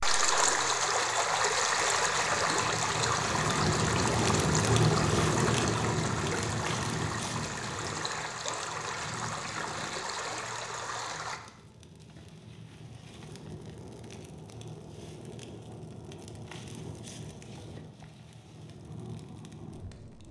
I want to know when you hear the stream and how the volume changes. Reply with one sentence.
The stream can be heard from 0.0 to 11.4 s, getting quieter.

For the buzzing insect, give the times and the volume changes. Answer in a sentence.
You can't hear the buzzing insect here.